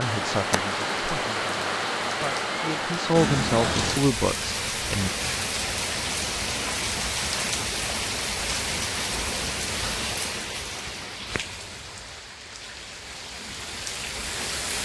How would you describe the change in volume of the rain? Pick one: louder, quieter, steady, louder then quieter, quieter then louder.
quieter.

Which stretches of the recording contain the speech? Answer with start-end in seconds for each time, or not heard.
0.0-5.1.